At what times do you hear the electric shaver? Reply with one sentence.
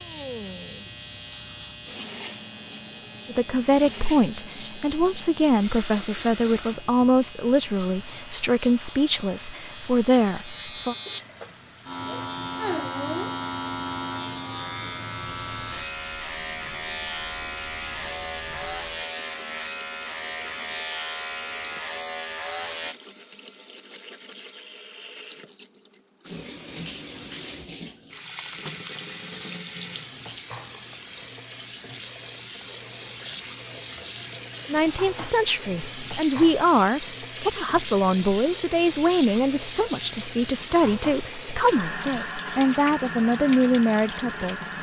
The electric shaver can be heard from 0.0 to 22.9 s.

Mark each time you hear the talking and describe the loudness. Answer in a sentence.
You can hear the talking from 3.2 to 10.9 s, at a steady volume; and from 34.6 to 44.6 s, at a steady volume.